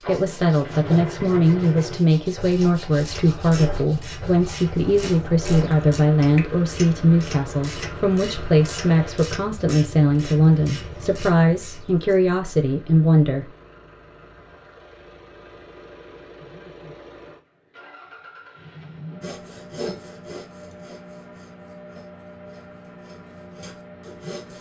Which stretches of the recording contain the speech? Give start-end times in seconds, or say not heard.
0.1-13.5.